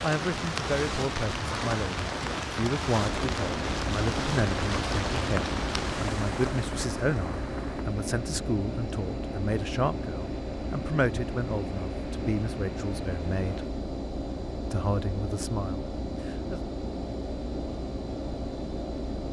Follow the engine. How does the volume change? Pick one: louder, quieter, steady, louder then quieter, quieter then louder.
steady.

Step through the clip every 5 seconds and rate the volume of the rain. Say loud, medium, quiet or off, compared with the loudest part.
loud, medium, quiet, off.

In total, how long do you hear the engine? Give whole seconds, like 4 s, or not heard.
16 s.